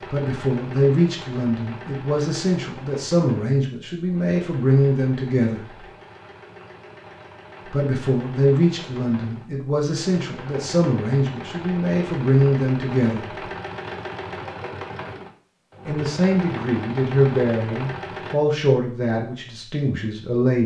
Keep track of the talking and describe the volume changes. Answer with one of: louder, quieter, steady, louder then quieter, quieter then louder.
steady.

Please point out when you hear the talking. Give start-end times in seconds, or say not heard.
0.1-5.8, 7.7-13.4, 15.8-20.6.